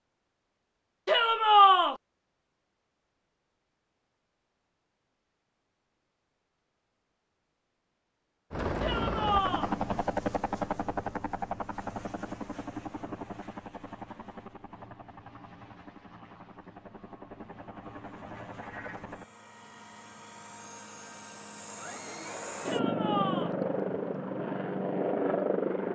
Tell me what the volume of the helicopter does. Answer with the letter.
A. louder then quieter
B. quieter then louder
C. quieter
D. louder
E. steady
B.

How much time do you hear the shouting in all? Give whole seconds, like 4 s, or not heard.
3 s.